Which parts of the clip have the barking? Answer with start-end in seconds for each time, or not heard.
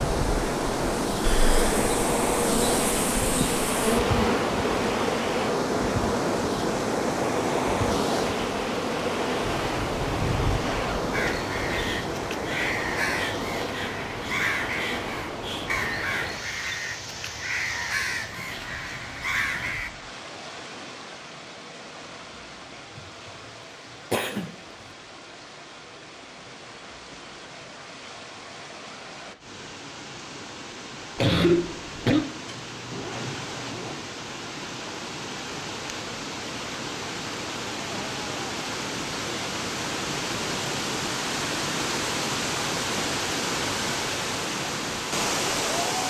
not heard.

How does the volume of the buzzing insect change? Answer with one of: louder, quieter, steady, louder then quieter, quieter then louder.
quieter.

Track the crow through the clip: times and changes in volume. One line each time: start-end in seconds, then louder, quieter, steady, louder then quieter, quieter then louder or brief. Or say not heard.
11.1-19.9 steady.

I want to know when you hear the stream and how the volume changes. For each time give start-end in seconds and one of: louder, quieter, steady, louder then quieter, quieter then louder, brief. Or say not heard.
0.0-46.0 quieter then louder.